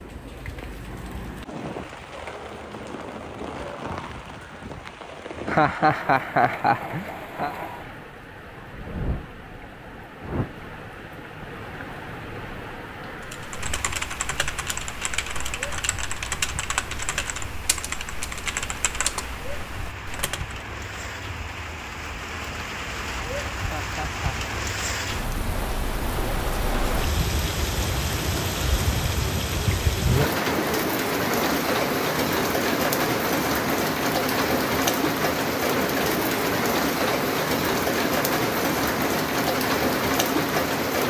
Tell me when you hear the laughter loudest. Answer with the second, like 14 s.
6 s.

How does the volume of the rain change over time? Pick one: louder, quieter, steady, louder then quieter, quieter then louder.
louder.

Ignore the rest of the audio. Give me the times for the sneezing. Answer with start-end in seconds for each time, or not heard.
not heard.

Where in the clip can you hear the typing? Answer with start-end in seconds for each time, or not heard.
13.2-20.6.